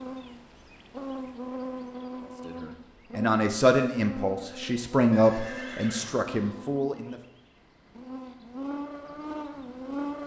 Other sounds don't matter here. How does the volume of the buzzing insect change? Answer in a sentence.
The loudness of the buzzing insect goes down, then up.